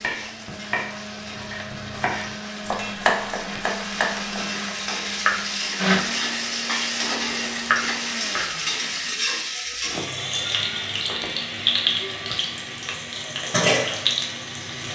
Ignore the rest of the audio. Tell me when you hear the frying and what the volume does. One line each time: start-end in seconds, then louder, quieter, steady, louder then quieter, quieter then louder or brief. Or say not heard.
0.0-14.9 louder.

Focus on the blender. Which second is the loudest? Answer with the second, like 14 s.
6 s.